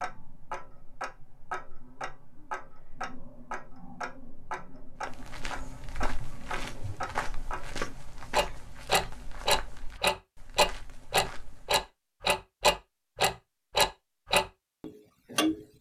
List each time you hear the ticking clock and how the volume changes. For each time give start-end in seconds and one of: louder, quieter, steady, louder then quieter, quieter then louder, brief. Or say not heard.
0.0-15.7 louder.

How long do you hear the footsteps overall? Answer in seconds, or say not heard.
7 s.